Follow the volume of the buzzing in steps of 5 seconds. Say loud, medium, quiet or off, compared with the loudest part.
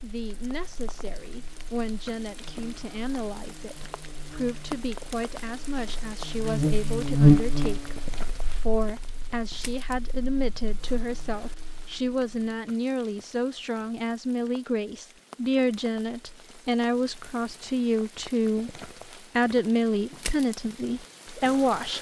quiet, loud, quiet, off, off.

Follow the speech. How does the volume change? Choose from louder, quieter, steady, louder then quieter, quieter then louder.
louder.